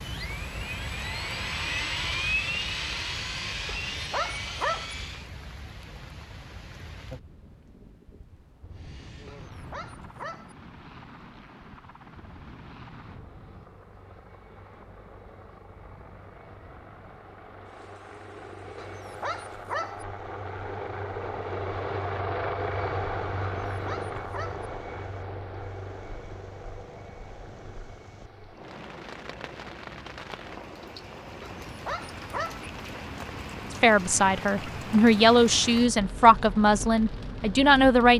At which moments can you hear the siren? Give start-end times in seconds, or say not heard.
not heard.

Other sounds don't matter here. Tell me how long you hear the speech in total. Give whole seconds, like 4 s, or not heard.
4 s.